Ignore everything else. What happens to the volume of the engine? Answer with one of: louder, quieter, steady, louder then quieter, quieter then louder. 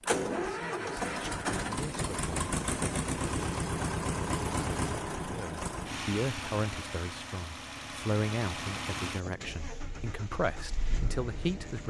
quieter.